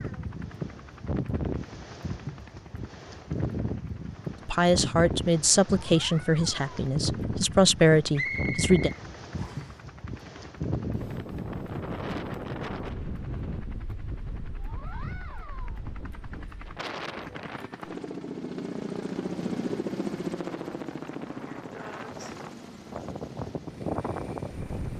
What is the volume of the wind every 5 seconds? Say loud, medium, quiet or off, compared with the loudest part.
loud, loud, loud, medium, loud.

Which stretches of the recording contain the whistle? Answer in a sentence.
The whistle can be heard from 8.2 to 9.8 s.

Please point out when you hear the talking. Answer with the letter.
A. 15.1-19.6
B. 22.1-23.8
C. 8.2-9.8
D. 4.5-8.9
D.